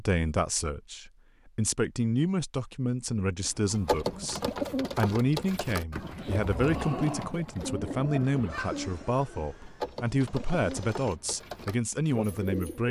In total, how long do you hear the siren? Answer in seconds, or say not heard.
not heard.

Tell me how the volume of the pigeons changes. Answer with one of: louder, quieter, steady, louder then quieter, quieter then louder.
quieter.